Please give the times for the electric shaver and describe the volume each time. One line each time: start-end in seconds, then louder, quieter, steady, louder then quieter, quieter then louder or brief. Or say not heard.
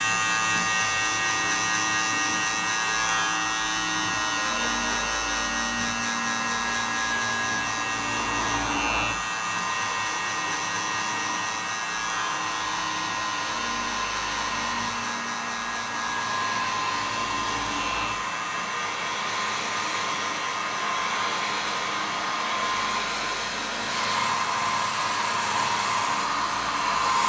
0.0-27.1 quieter.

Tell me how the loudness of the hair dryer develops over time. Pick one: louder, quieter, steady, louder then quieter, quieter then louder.
louder.